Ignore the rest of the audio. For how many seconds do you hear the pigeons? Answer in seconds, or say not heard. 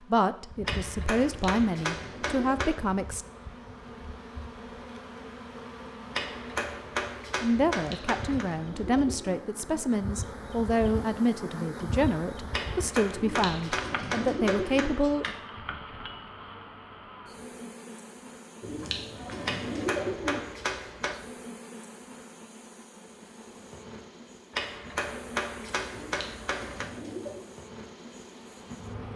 8 s.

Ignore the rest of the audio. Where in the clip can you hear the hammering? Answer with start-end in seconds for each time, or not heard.
0.7-2.8, 6.1-8.4, 12.5-15.4, 19.4-21.2, 24.5-26.9.